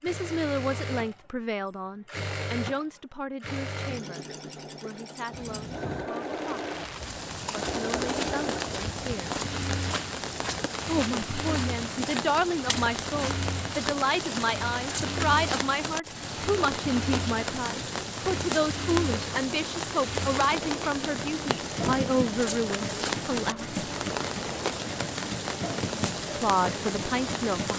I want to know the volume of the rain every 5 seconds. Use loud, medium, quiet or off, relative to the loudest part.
off, loud, loud, loud, loud, loud.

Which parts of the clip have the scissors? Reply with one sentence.
You can hear the scissors from 5.3 to 6.1 s.